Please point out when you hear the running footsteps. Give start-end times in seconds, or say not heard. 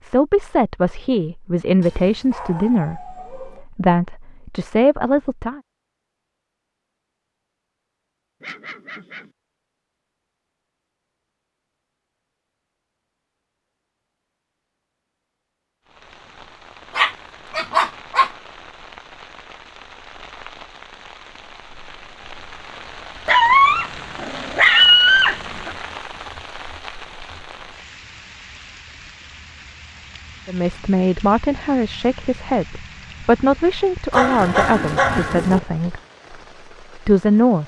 not heard.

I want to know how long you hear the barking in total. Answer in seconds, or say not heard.
8 s.